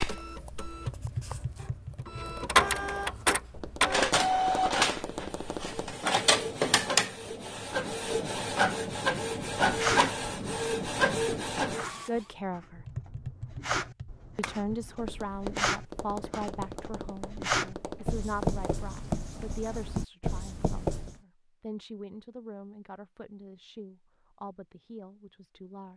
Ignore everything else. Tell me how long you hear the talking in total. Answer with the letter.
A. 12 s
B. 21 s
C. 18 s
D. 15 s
A.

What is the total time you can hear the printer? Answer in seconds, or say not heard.
12 s.